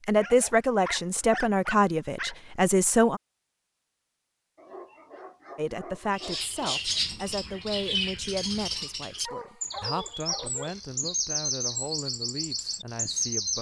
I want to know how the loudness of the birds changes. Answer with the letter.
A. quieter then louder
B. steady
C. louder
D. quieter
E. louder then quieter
B.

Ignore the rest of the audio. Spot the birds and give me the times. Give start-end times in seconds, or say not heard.
6.1-13.5.